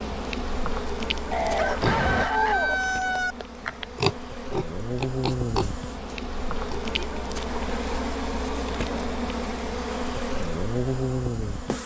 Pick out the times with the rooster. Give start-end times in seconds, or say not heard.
1.3-3.4.